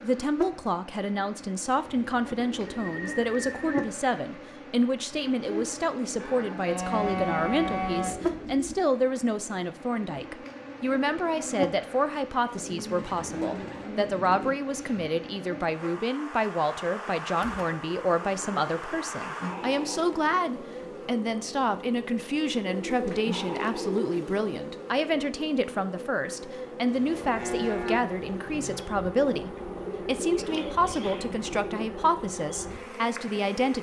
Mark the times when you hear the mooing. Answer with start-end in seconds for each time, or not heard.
6.2-8.2, 26.9-28.9.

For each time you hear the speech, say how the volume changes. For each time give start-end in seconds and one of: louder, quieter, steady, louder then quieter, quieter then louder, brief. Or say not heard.
0.0-33.7 steady.